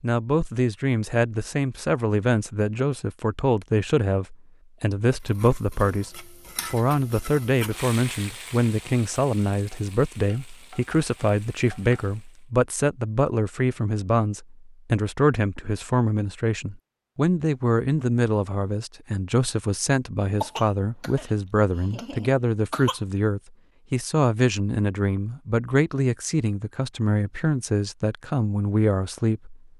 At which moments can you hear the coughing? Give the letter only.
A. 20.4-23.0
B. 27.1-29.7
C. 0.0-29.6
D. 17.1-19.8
A.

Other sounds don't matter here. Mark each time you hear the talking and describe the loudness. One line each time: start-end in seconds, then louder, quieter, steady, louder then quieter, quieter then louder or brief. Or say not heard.
0.0-29.6 steady.